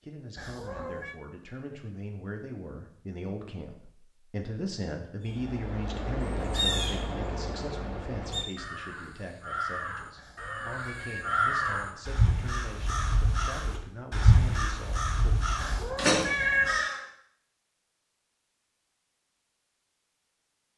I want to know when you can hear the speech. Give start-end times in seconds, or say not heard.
0.0-15.3.